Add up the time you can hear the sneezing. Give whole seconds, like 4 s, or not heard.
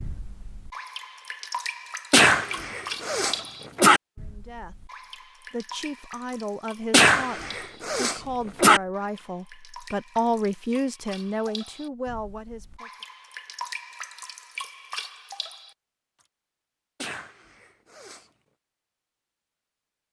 5 s.